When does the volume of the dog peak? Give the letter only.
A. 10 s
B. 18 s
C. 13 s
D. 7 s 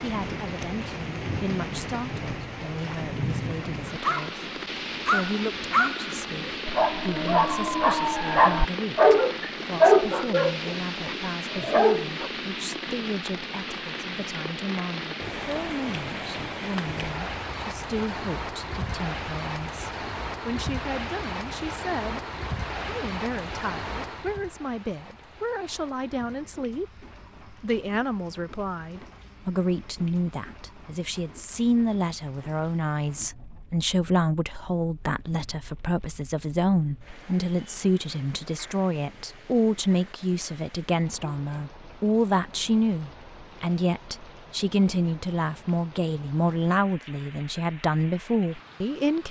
A.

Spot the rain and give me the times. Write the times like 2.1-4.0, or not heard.
0.0-49.2.